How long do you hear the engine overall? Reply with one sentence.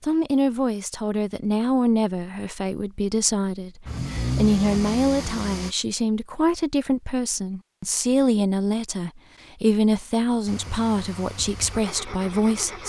You can hear the engine for 4 seconds altogether.